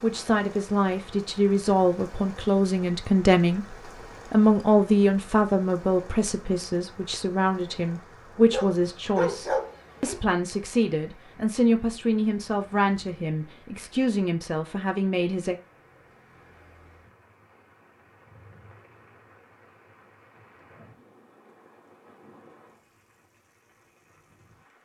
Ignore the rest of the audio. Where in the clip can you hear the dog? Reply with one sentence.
The dog can be heard from 8.5 to 10.2 s.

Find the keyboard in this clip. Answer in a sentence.
You can't hear the keyboard here.